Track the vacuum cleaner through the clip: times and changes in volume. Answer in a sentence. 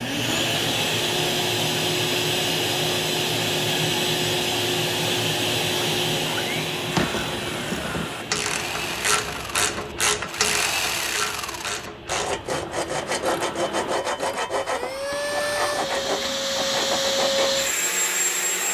The vacuum cleaner can be heard from 0.0 to 18.6 s, getting quieter then louder.